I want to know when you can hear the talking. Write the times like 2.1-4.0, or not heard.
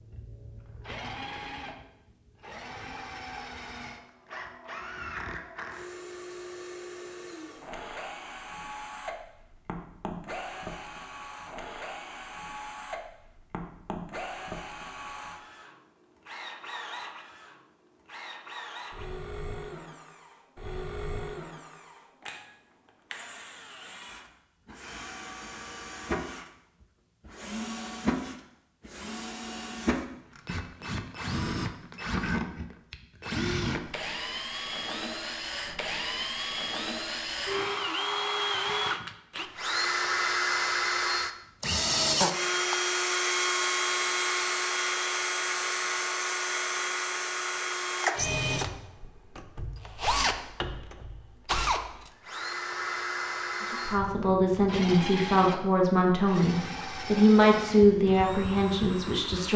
53.7-59.5.